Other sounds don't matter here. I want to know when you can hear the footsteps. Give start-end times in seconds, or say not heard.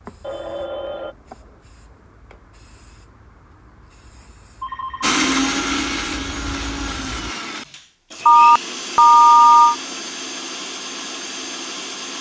not heard.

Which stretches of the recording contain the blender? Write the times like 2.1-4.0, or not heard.
5.0-12.1.